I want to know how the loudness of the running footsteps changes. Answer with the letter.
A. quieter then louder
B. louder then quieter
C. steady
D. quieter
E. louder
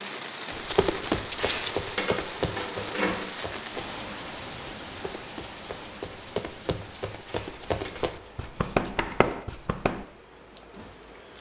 A.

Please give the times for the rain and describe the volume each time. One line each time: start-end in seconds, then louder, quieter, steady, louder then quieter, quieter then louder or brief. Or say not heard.
0.0-11.3 quieter.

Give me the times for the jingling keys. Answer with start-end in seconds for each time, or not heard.
1.4-3.2, 7.2-8.5.